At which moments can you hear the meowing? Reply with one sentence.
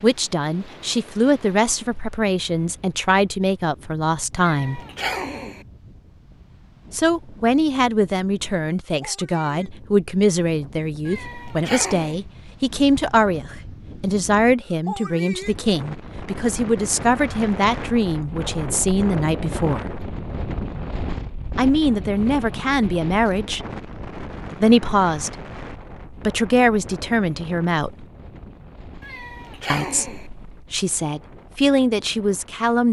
The meowing can be heard from 4.3 to 5.7 s, from 11.1 to 12.2 s and from 29.0 to 30.3 s.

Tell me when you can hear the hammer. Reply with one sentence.
You can't hear the hammer here.